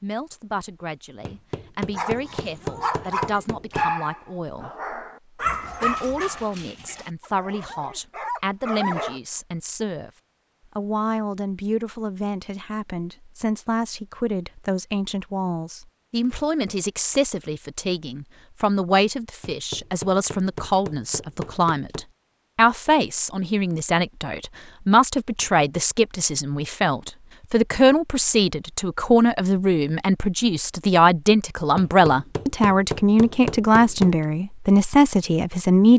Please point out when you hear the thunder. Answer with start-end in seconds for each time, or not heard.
not heard.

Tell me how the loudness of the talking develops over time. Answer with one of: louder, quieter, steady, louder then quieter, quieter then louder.
louder.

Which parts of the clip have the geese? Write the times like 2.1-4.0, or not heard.
not heard.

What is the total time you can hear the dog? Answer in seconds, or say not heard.
7 s.